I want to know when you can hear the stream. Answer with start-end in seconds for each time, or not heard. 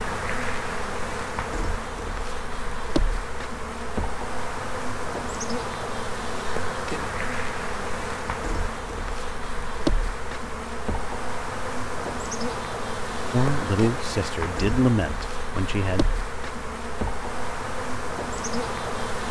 not heard.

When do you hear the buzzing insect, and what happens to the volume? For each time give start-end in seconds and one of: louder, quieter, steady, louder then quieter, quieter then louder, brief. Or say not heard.
0.0-19.2 steady.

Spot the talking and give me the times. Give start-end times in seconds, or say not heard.
13.3-16.1.